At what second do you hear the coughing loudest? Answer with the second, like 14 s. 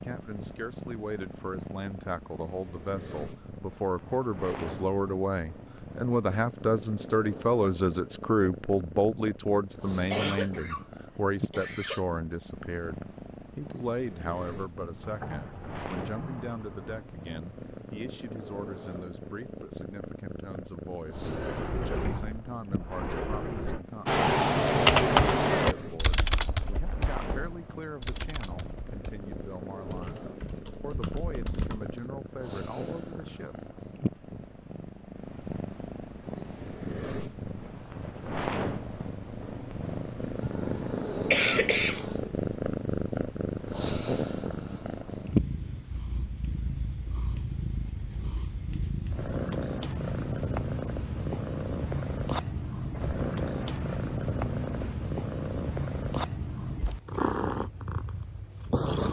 41 s.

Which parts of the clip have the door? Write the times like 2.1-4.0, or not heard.
15.0-17.1, 21.1-23.9, 52.9-55.0.